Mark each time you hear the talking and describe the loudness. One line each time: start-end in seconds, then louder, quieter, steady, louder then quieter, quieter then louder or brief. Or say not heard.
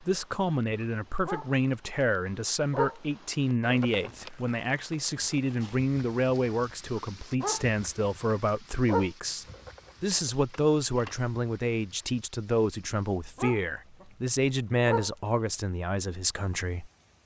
0.0-16.9 steady.